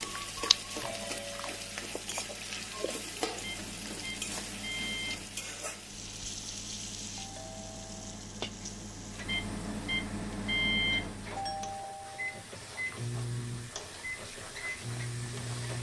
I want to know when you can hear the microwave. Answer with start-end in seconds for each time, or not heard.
0.0-15.7.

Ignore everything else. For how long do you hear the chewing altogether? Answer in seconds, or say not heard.
3 s.